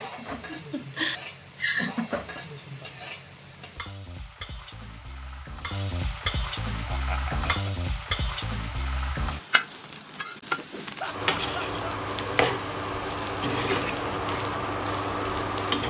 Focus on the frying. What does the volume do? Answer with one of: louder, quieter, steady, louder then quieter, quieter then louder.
louder.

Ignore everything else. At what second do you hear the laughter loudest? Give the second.
2 s.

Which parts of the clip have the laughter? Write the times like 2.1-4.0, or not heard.
0.1-2.4, 6.8-7.9, 10.9-12.0.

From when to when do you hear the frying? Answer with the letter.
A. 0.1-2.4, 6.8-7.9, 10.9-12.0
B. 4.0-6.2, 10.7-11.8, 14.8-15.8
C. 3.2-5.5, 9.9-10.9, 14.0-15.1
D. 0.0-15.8
D.